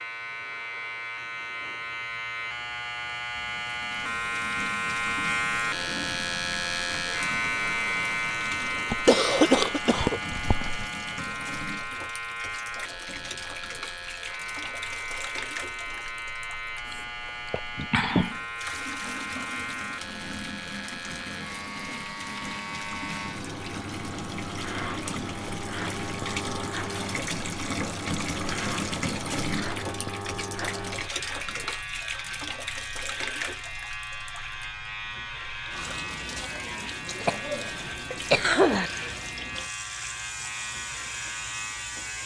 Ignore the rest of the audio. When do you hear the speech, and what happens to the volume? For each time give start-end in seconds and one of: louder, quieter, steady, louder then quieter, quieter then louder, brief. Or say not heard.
not heard.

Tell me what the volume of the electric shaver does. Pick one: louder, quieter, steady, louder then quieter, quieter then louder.
quieter.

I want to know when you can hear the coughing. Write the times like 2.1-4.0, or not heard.
8.9-10.8, 16.9-18.4, 37.2-38.9.